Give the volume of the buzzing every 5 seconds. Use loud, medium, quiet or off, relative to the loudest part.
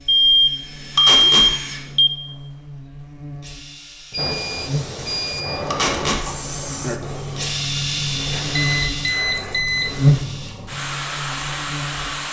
quiet, medium, loud.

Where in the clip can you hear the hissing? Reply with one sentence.
The hissing can be heard from 4.2 to 12.2 s.